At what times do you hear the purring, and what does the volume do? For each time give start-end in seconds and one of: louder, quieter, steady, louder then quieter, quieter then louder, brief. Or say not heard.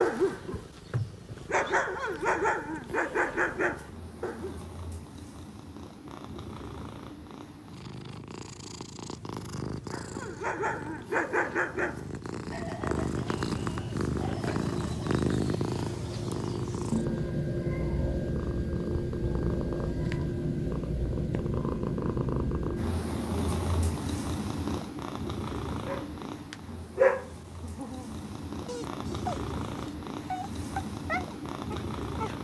0.0-32.3 louder then quieter.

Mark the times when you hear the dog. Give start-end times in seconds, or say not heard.
0.0-4.5, 9.9-15.2, 25.8-32.3.